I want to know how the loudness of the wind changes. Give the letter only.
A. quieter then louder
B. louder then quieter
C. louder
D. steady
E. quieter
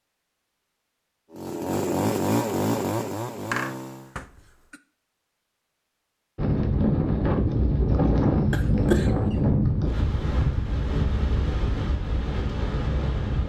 E.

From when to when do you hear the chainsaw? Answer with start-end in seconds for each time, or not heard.
1.3-4.2.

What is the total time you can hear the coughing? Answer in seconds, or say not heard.
2 s.